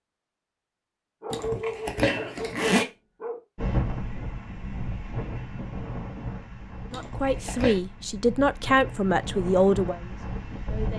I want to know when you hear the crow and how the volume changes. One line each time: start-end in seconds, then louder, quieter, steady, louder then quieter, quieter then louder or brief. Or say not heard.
not heard.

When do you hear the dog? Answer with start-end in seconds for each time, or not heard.
1.2-3.4.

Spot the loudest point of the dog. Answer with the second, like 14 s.
2 s.